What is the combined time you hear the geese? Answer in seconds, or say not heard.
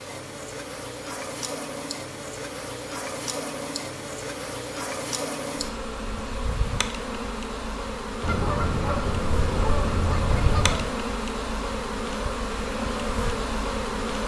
3 s.